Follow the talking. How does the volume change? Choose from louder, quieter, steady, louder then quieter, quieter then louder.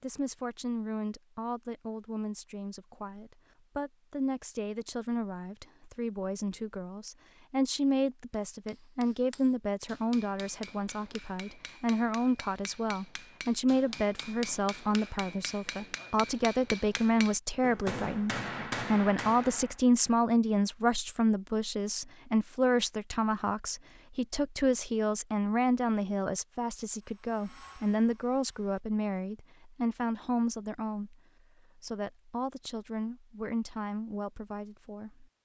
louder then quieter.